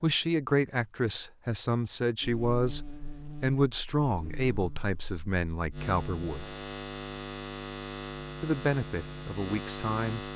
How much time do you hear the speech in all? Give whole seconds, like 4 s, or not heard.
8 s.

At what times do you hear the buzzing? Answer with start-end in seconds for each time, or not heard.
2.2-10.3.